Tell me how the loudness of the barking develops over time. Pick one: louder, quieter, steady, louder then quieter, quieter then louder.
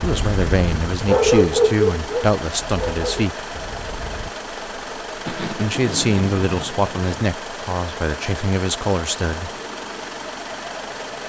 louder then quieter.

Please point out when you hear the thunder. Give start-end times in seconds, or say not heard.
5.2-7.1.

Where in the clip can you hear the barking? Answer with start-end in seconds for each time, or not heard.
0.0-4.3.